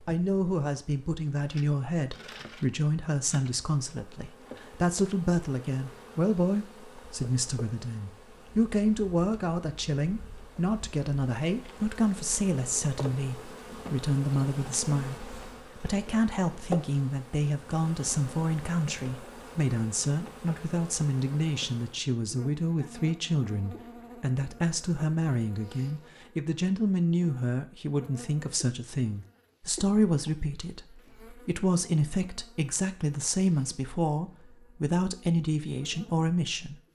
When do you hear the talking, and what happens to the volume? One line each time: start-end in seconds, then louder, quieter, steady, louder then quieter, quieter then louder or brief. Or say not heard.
0.1-36.9 steady.